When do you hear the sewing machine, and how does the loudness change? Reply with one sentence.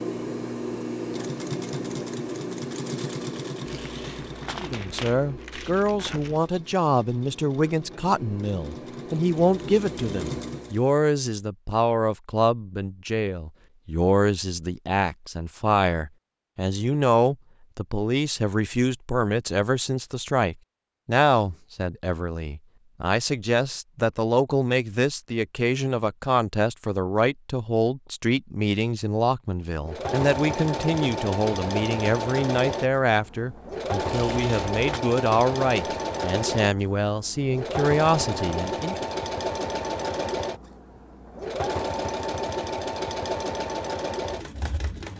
The sewing machine can be heard from 0.0 to 10.8 s, getting quieter then louder; and from 29.8 to 45.1 s, at a steady volume.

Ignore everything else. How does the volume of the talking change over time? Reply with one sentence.
The volume of the talking stays about the same.